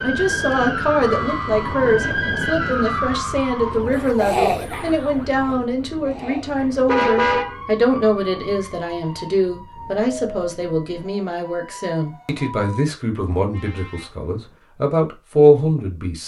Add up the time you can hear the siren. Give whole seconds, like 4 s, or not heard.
13 s.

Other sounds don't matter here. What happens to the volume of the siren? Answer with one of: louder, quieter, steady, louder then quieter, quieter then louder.
quieter.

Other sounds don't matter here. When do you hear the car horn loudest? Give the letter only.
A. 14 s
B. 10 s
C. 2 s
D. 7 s
D.